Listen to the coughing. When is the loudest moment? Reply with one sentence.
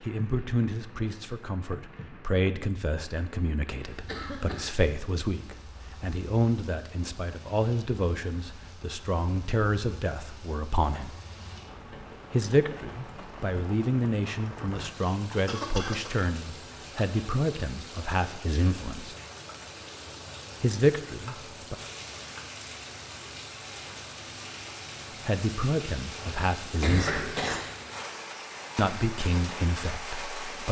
The volume of the coughing peaks at 27 seconds.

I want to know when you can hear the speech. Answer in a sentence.
The speech can be heard from 0.0 to 11.2 s, from 12.3 to 19.1 s, from 20.6 to 21.8 s, from 25.2 to 27.4 s and from 28.8 to 30.6 s.